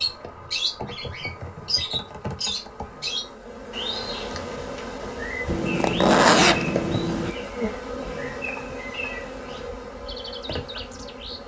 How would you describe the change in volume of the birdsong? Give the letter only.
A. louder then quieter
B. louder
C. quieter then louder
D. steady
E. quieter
E.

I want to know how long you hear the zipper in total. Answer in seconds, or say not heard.
2 s.